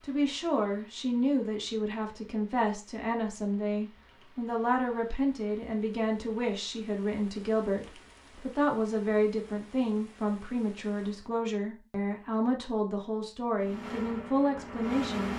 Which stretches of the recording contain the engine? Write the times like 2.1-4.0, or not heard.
13.6-15.3.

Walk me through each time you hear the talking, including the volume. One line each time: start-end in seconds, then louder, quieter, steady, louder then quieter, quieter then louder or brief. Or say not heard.
0.0-15.3 steady.